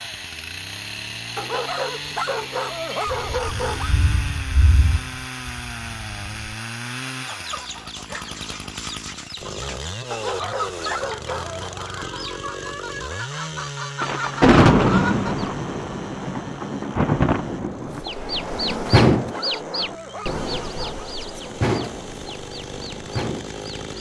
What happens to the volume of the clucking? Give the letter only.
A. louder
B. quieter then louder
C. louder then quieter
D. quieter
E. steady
C.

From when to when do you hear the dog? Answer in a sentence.
The dog can be heard from 1.4 to 4.0 s, from 10.1 to 11.8 s and from 18.5 to 21.1 s.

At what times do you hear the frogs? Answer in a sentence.
You can't hear the frogs here.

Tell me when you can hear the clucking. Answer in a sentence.
You can hear the clucking from 7.2 to 15.5 s and from 17.9 to 23.9 s.